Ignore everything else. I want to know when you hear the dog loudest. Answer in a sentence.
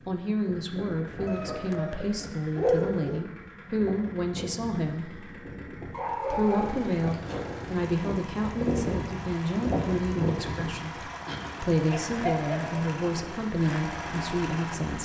The volume of the dog peaks at 3 seconds.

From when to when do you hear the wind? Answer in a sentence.
The wind can be heard from 0.0 to 15.0 s.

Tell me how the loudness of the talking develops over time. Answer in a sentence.
The loudness of the talking stays about the same.